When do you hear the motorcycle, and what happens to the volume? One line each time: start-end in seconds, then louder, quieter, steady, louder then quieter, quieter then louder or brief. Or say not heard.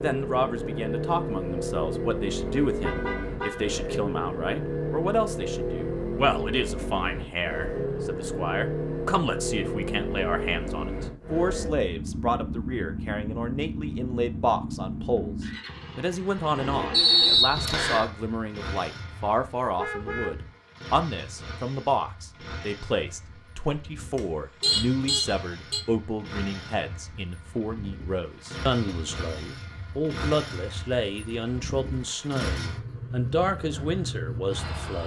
0.0-35.0 quieter then louder.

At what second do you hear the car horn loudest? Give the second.
25 s.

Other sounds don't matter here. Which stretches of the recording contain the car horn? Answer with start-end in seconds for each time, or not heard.
2.5-3.7, 19.8-20.4, 24.1-25.9.